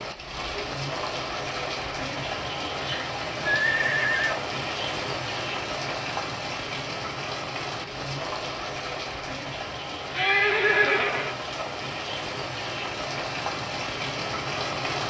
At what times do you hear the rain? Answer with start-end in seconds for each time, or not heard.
0.0-15.0.